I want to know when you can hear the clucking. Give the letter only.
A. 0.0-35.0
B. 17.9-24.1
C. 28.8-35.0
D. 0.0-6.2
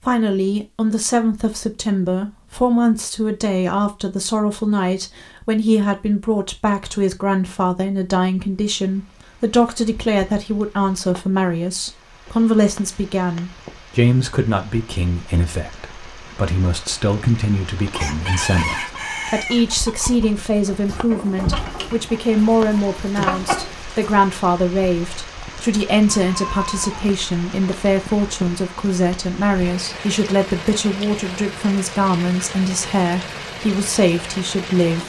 B.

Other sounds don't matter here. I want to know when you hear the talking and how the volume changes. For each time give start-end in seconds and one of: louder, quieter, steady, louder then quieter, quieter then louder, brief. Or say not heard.
0.0-35.0 steady.